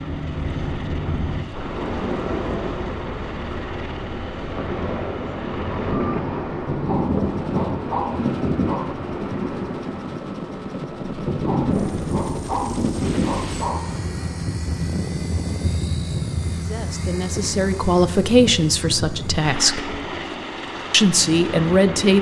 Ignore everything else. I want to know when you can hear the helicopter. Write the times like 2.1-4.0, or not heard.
0.0-22.1.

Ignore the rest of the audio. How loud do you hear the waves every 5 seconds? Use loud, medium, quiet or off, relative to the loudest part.
loud, loud, medium, medium, medium.